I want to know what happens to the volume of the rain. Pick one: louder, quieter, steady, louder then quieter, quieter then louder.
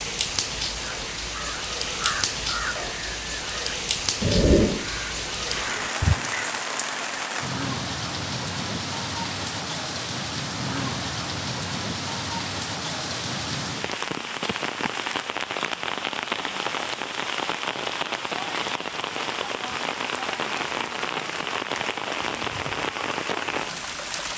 steady.